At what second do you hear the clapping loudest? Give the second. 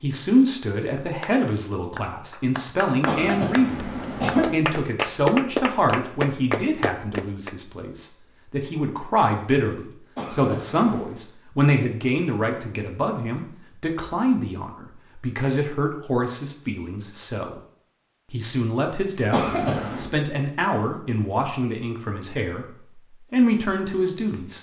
5 s.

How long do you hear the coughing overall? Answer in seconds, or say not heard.
3 s.